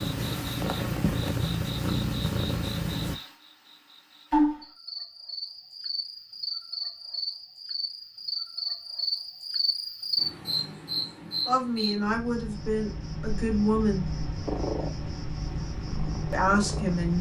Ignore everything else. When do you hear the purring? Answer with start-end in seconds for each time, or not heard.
0.0-3.1, 14.4-17.1.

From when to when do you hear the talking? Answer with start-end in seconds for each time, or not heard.
11.4-14.1, 16.3-17.1.